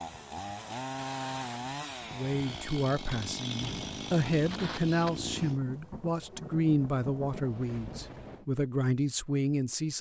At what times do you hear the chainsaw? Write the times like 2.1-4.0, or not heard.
0.0-5.6.